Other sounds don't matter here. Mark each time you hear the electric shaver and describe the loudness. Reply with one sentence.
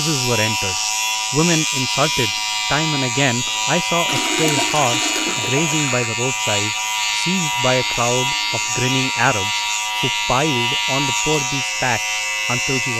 The electric shaver can be heard from 0.0 to 12.9 s, at a steady volume.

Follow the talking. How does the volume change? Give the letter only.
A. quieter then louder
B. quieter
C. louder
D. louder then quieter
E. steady
E.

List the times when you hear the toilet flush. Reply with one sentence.
The toilet flush can be heard from 4.0 to 6.0 s.